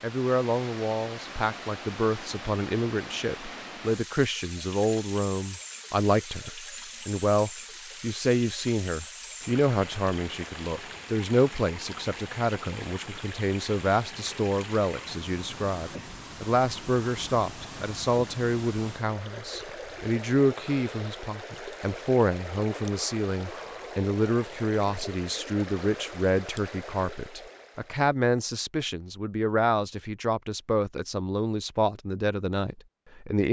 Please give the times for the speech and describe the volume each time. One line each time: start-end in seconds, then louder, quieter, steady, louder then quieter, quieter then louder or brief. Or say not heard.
0.0-33.4 steady.